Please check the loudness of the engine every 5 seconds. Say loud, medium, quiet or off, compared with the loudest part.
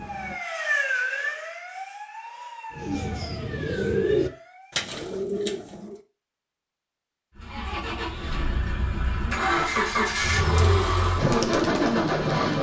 off, loud, loud.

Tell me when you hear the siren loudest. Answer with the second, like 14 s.
1 s.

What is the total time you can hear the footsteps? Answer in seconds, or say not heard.
not heard.